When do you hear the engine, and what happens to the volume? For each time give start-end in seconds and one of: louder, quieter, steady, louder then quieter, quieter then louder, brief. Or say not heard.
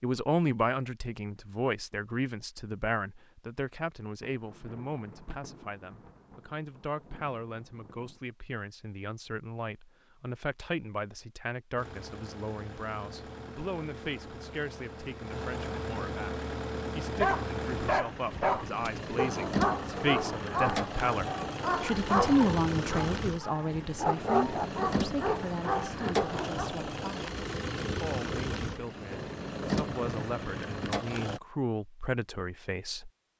11.8-31.4 louder.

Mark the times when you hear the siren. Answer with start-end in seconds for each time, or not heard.
not heard.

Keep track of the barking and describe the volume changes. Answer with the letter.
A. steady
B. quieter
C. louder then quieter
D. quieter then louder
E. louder
A.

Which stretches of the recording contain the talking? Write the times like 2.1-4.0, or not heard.
0.0-33.1.